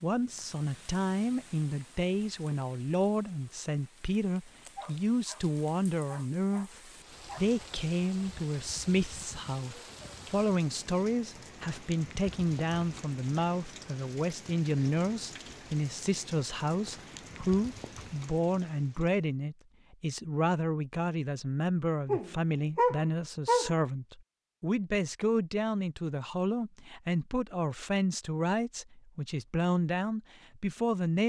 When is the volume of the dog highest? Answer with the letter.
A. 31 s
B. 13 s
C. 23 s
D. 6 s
C.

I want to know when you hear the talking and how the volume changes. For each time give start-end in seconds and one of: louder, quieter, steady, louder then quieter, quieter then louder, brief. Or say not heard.
0.0-31.2 steady.